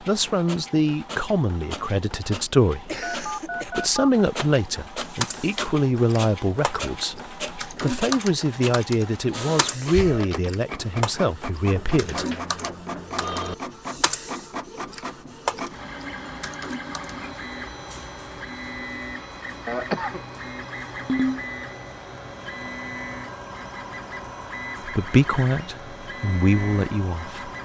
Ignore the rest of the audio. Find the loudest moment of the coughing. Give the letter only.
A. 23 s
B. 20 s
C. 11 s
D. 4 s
B.